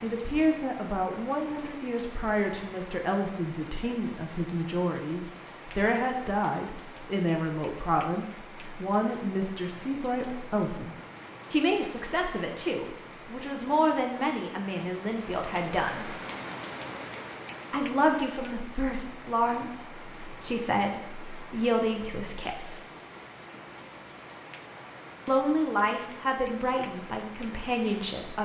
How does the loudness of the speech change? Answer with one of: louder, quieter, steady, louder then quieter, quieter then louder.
steady.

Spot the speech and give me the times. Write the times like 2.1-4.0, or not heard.
0.0-16.1, 17.7-22.8, 25.2-28.4.